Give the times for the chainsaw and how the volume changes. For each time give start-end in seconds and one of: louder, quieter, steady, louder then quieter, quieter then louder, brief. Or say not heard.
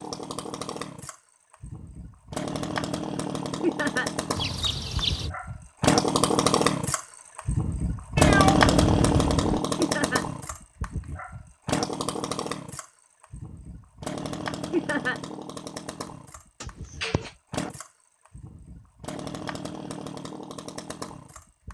0.0-21.6 louder then quieter.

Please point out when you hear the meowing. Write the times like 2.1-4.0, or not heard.
4.3-5.3, 8.2-9.6, 16.6-17.3.